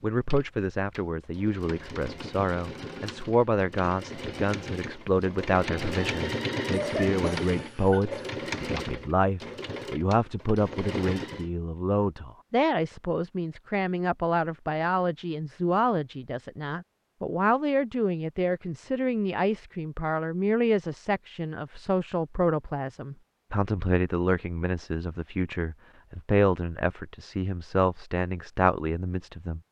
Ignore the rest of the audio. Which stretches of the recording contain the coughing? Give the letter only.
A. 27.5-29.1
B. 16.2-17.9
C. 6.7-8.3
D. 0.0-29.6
C.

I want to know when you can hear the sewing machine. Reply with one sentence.
The sewing machine can be heard from 0.0 to 11.5 s.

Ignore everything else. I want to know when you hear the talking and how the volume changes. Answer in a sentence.
You can hear the talking from 0.0 to 29.6 s, at a steady volume.